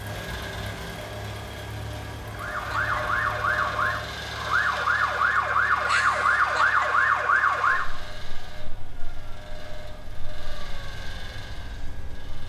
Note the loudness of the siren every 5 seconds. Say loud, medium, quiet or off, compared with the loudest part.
loud, loud, quiet.